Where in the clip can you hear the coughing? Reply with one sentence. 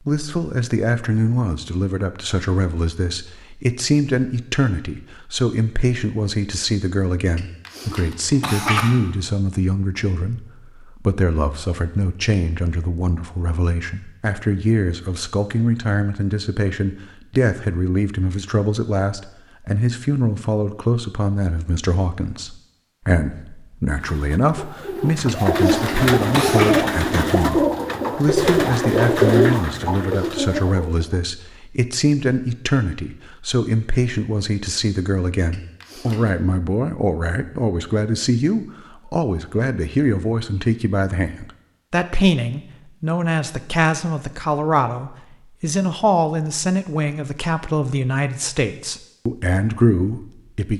The coughing can be heard from 7.3 to 8.9 s, from 25.2 to 26.8 s and from 35.5 to 36.4 s.